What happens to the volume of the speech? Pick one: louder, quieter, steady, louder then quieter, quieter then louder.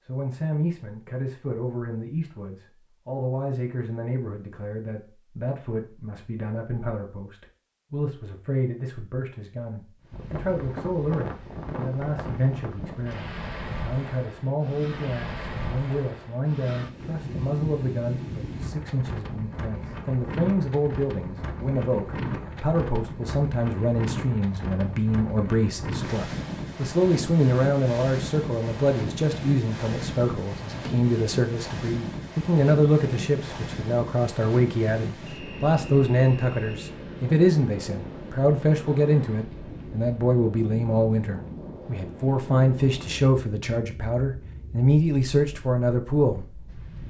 louder.